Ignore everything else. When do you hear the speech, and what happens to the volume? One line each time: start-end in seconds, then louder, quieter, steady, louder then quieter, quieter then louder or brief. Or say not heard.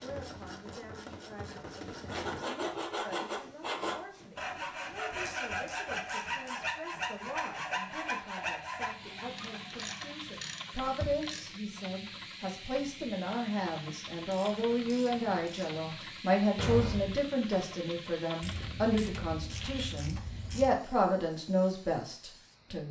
0.0-22.8 louder.